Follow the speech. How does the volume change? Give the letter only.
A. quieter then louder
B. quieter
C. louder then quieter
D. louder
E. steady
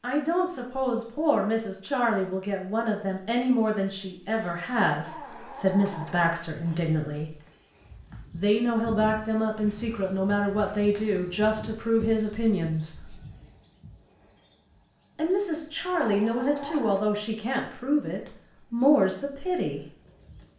E.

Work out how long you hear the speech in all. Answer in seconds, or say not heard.
17 s.